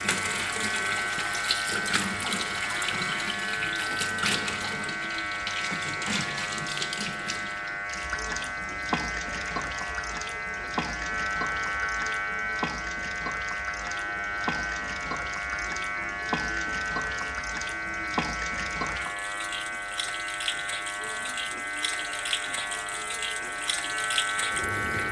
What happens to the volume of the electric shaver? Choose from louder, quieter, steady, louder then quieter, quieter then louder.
steady.